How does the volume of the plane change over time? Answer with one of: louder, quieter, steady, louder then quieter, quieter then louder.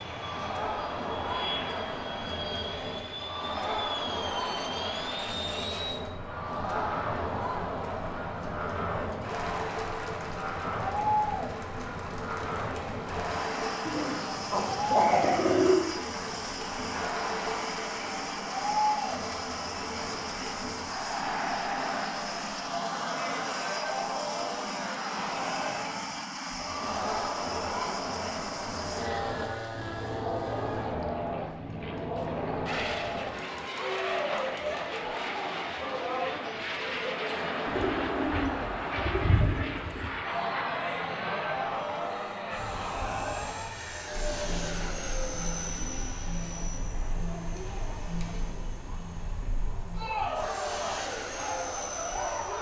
steady.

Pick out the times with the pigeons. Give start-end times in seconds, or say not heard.
13.8-15.8, 37.6-40.1.